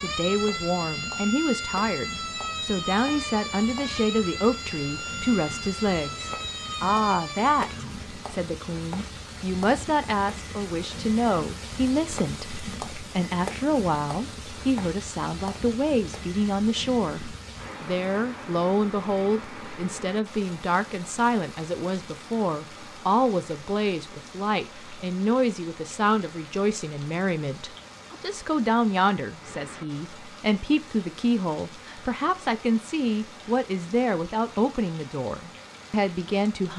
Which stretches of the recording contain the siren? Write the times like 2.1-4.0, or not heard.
0.0-8.1.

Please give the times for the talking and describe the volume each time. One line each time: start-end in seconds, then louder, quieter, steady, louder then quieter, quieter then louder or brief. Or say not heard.
0.0-36.7 steady.